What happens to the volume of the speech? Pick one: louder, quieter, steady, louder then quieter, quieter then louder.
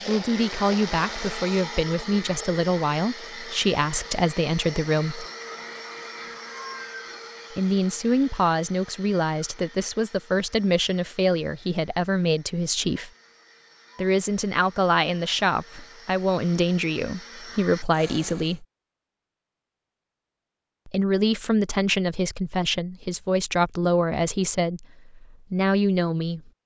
steady.